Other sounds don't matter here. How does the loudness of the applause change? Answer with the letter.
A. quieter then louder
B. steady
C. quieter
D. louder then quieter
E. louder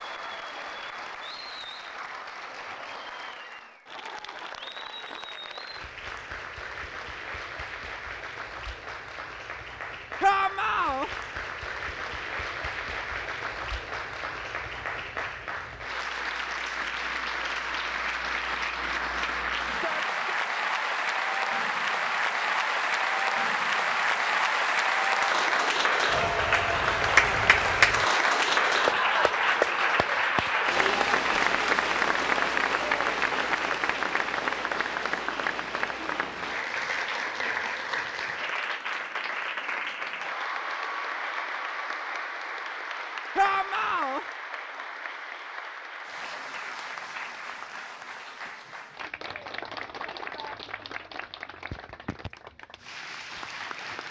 D.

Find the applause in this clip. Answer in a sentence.
You can hear the applause from 0.0 to 54.0 s.